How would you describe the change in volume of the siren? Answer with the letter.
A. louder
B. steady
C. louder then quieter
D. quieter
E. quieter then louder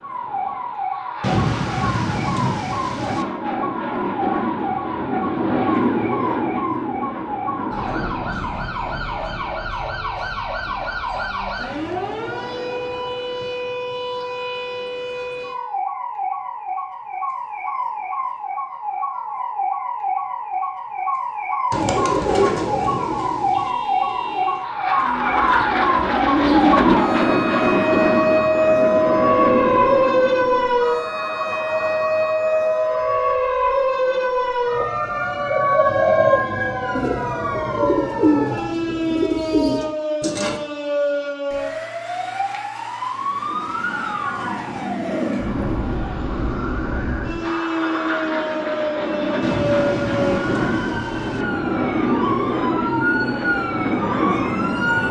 C.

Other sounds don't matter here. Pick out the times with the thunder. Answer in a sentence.
You can hear the thunder from 1.2 to 3.2 s, from 21.7 to 23.7 s and from 49.4 to 51.5 s.